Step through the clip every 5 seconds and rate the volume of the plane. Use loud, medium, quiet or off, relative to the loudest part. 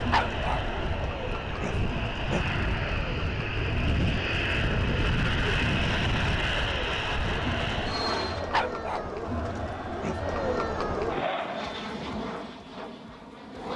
loud, loud, medium.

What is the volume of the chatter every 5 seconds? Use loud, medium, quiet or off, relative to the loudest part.
medium, medium, loud.